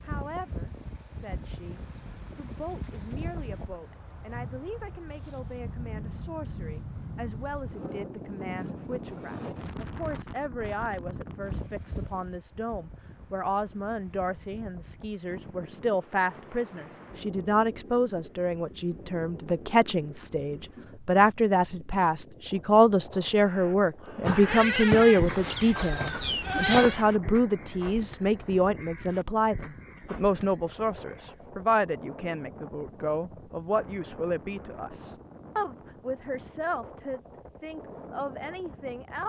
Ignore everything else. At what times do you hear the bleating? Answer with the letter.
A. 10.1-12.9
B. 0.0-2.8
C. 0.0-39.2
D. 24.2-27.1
D.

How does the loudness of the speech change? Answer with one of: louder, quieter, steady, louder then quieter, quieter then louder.
louder then quieter.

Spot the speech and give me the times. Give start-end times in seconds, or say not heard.
0.0-39.2.